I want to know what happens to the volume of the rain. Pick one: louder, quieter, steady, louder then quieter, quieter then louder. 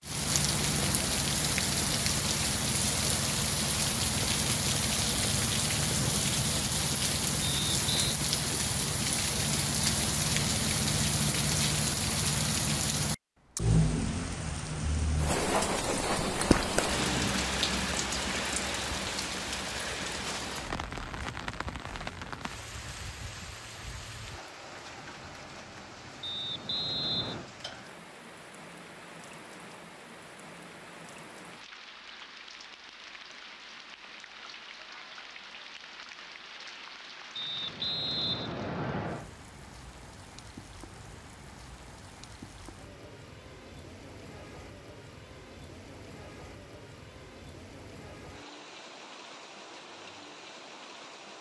quieter.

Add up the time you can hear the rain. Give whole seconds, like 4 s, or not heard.
51 s.